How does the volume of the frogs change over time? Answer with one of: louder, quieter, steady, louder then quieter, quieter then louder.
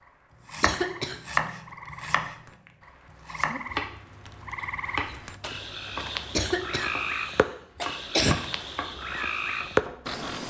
louder.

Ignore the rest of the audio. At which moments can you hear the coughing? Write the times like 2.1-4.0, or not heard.
0.6-1.2, 6.3-8.3.